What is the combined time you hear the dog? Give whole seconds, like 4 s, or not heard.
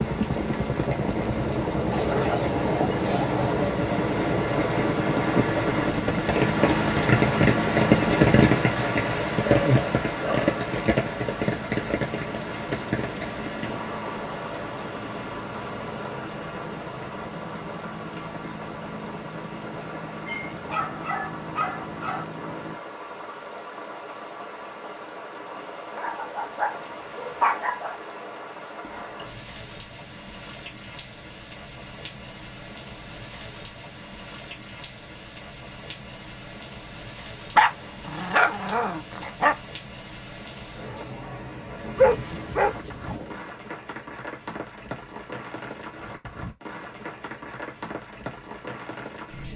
11 s.